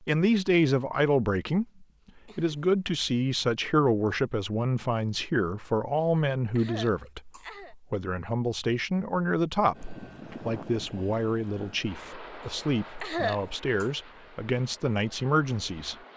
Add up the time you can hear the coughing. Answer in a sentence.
You can hear the coughing for 4 seconds altogether.